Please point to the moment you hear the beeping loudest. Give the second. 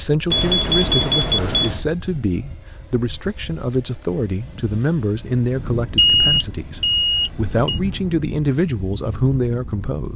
6 s.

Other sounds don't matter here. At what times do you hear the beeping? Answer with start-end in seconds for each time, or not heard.
0.3-1.8, 6.0-7.8.